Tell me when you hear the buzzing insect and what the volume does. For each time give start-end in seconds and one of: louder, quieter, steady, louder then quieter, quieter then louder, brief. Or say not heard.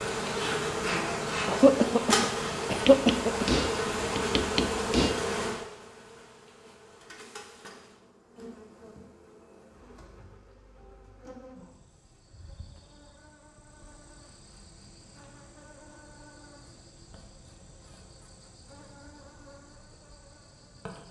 0.0-21.0 quieter.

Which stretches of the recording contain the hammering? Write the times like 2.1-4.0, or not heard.
2.9-5.2.